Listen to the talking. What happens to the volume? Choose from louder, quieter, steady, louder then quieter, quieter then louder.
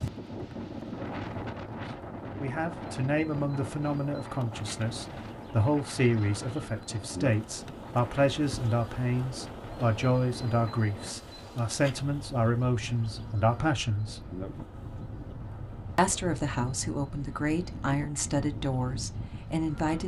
steady.